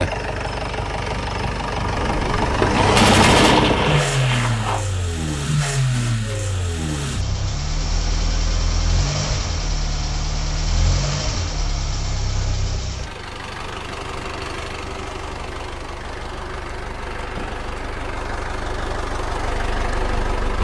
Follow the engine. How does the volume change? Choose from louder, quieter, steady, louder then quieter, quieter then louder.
quieter.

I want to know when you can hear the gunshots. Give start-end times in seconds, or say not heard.
1.9-4.8.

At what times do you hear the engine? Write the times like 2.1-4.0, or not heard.
0.0-20.5.